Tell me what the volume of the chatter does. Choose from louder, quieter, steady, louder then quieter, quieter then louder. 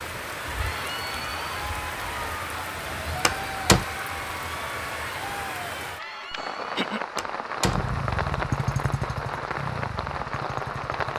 steady.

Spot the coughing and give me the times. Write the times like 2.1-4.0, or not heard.
6.3-7.0.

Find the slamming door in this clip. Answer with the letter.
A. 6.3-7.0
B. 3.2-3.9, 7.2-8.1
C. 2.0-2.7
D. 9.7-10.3
B.